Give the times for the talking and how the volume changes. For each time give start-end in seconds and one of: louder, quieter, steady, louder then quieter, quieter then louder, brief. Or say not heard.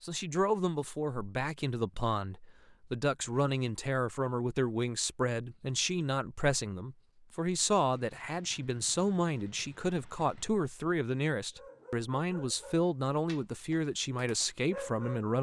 0.0-15.3 steady.